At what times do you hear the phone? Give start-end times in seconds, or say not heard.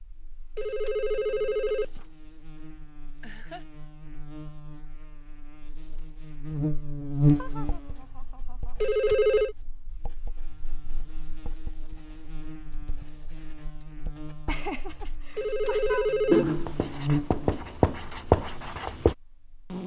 0.6-2.0, 8.8-9.6, 15.3-16.4.